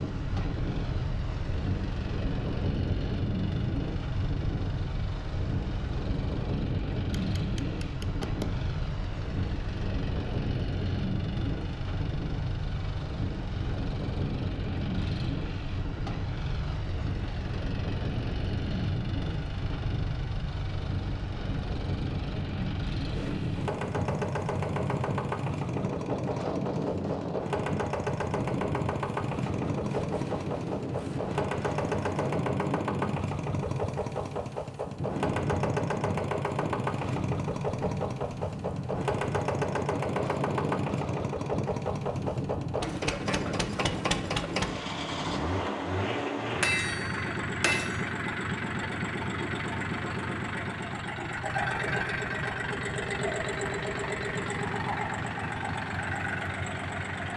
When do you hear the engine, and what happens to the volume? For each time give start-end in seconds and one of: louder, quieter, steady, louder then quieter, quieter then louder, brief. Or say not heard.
0.0-57.3 louder.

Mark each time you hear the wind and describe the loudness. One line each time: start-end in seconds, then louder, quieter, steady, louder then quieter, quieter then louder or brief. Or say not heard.
0.0-44.8 steady.